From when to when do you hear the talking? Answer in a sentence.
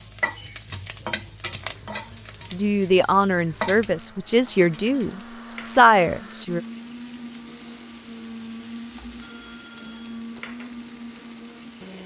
The talking can be heard from 2.5 to 6.6 s.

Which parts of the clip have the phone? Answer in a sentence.
You can hear the phone from 9.2 to 10.4 s.